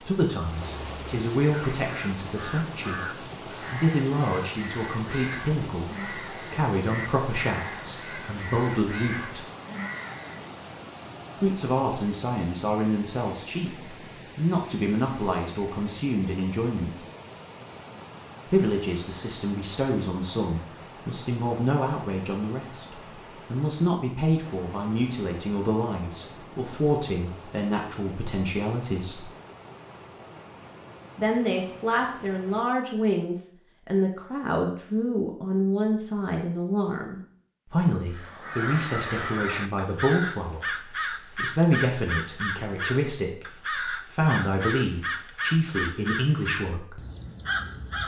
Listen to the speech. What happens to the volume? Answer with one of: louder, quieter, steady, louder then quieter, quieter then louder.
steady.